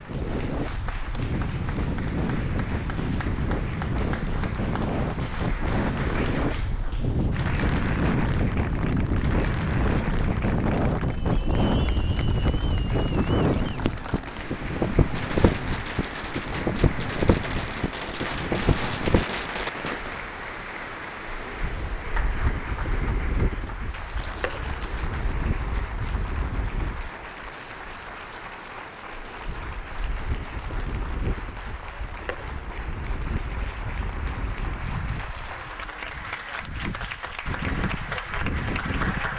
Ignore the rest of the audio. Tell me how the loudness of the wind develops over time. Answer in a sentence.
The loudness of the wind goes down.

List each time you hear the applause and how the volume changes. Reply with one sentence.
You can hear the applause from 0.0 to 39.3 s, at a steady volume.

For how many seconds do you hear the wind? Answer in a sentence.
You can hear the wind for 39 seconds altogether.